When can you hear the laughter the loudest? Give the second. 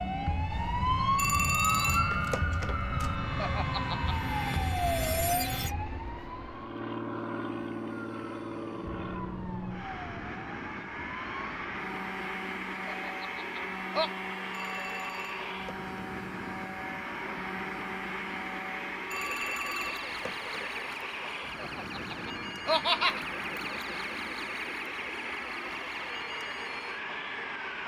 23 s.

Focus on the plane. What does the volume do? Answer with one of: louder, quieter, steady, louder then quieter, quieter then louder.
steady.